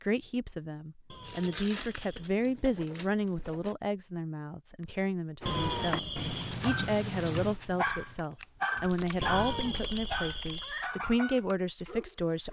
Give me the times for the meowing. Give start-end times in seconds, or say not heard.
1.1-2.3, 5.5-6.5, 9.2-10.9.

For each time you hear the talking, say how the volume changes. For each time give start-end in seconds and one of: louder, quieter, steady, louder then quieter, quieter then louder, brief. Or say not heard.
0.0-12.4 steady.